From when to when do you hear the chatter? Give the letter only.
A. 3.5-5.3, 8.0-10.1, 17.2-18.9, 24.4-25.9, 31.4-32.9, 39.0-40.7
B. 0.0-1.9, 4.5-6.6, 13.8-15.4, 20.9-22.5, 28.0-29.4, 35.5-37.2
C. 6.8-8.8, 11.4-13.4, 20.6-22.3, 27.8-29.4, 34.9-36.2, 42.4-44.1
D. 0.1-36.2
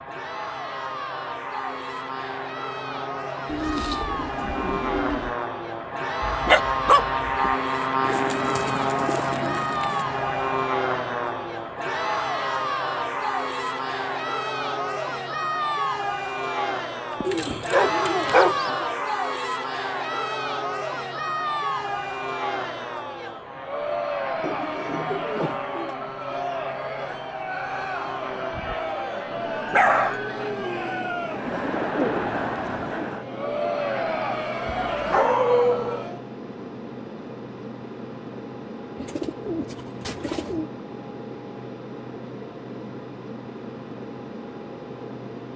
D.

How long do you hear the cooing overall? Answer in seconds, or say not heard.
10 s.